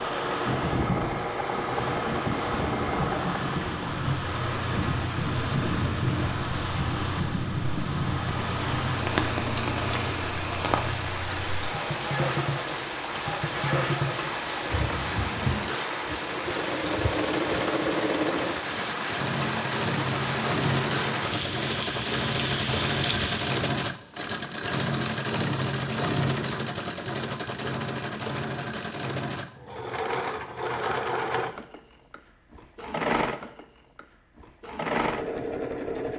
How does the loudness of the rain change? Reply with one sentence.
The loudness of the rain stays about the same.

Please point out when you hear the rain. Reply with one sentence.
The rain can be heard from 0.0 to 23.6 s.